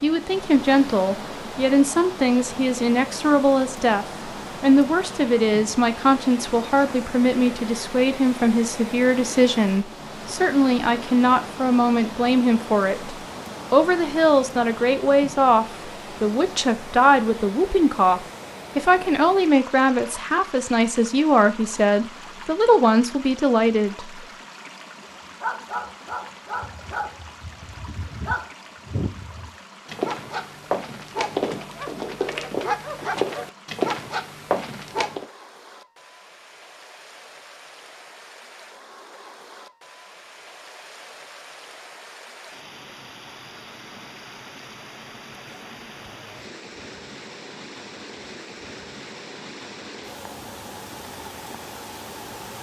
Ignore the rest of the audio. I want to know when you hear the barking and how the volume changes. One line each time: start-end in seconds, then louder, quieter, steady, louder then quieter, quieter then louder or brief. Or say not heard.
25.4-35.2 louder.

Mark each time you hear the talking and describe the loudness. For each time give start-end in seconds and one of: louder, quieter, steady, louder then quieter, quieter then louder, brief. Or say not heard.
0.0-24.2 steady.